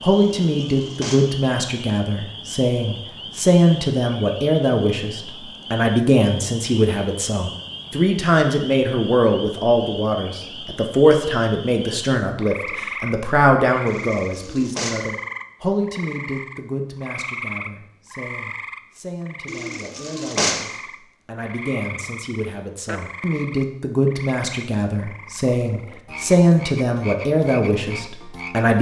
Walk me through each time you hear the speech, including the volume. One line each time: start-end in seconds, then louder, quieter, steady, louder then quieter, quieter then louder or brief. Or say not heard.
0.0-28.7 quieter then louder.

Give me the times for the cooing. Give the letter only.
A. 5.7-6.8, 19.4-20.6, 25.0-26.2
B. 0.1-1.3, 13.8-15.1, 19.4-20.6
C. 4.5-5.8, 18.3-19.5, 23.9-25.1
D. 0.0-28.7
B.